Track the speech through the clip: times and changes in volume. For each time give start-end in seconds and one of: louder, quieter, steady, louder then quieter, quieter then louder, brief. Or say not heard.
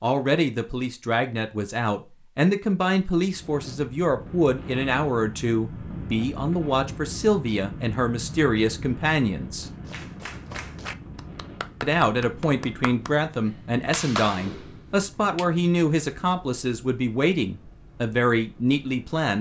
0.0-9.7 steady
11.8-19.3 steady.